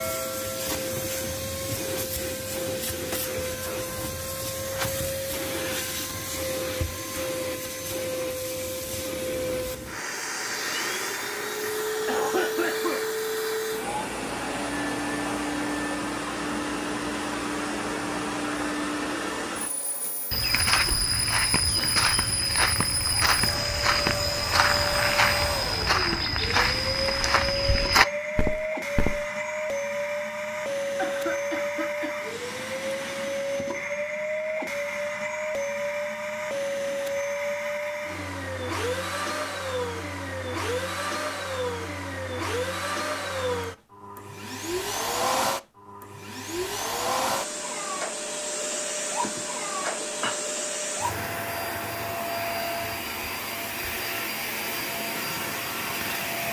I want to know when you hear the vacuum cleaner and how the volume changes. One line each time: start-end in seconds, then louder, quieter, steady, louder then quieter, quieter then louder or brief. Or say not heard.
0.0-56.4 steady.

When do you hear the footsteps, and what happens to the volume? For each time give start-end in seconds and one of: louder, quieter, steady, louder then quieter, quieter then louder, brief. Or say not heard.
20.3-29.2 steady.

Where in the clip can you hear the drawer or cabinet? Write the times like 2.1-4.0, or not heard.
not heard.